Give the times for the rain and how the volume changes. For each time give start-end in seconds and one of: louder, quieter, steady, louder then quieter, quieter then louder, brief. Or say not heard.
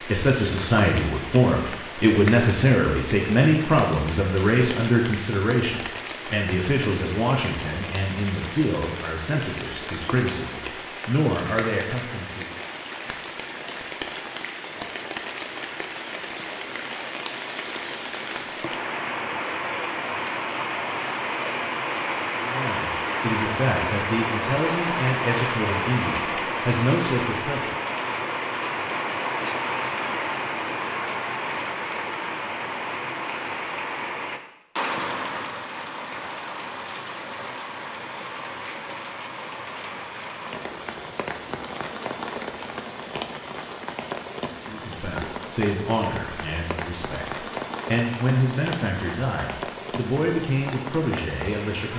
0.0-51.9 louder then quieter.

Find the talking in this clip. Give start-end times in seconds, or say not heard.
0.1-12.6, 22.4-27.7, 44.6-51.9.